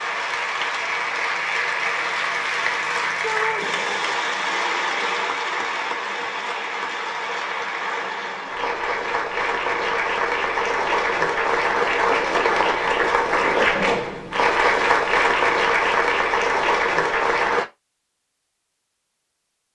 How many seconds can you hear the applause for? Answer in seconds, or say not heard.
18 s.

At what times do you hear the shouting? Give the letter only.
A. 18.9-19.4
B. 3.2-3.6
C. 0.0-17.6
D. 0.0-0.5
B.